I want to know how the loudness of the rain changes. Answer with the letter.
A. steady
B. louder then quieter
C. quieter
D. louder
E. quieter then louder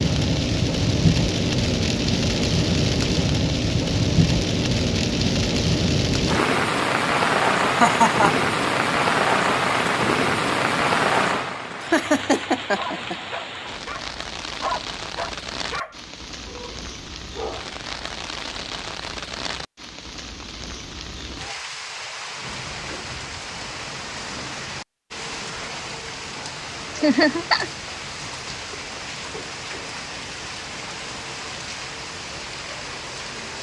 C.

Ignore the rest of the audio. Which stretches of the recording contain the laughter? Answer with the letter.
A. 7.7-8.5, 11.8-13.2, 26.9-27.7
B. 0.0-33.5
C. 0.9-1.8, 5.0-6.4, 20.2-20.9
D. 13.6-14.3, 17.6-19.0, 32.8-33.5
A.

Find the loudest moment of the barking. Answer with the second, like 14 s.
15 s.